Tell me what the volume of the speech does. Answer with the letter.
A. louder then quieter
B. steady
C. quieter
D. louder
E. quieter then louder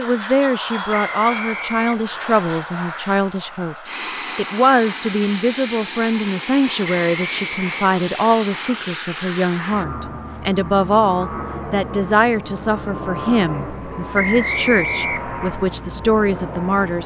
B.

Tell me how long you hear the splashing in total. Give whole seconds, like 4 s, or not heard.
not heard.